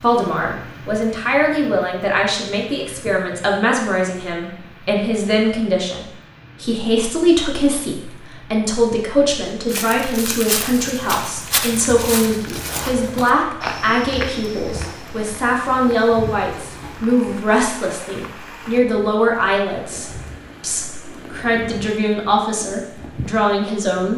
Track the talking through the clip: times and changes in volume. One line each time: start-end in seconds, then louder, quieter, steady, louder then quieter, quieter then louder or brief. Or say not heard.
0.0-24.1 steady.